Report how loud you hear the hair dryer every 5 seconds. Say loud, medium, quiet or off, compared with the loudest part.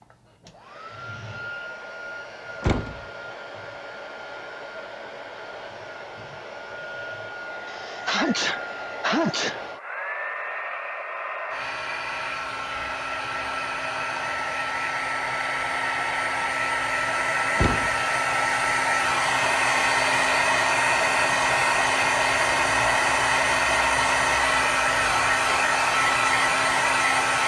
quiet, quiet, medium, loud, loud, loud.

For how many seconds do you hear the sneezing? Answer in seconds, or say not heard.
2 s.